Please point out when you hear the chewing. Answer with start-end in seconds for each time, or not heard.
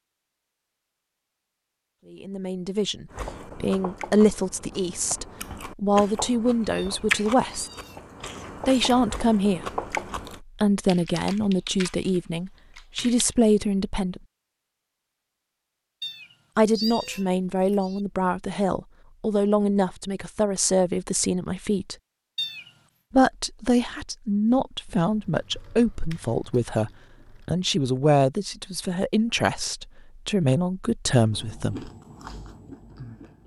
3.1-10.4, 31.3-33.4.